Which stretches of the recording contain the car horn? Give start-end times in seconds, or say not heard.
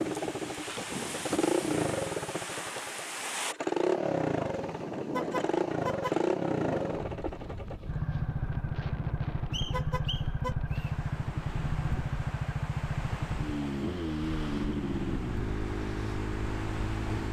5.1-6.2, 9.7-10.6.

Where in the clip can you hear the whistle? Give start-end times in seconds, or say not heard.
9.5-10.9.